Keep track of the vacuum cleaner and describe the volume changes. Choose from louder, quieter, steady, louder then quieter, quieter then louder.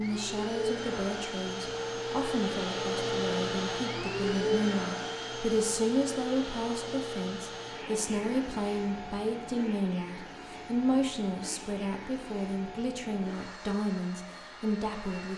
quieter.